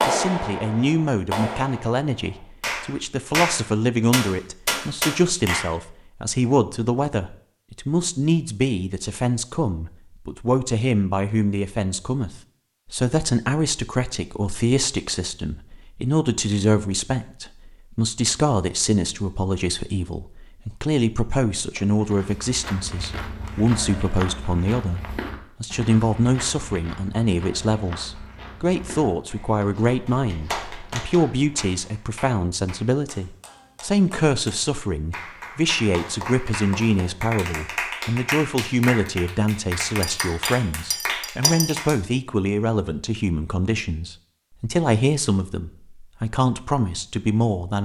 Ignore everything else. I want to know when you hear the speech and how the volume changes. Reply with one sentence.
You can hear the speech from 0.0 to 47.8 s, at a steady volume.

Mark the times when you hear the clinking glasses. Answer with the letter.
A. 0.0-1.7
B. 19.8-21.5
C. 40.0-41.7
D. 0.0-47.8
C.